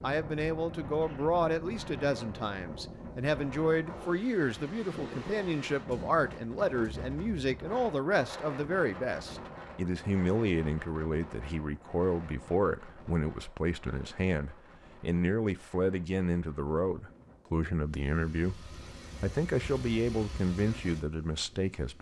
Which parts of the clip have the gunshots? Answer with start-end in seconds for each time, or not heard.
not heard.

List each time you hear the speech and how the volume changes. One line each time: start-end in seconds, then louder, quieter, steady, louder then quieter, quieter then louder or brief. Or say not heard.
0.0-21.9 steady.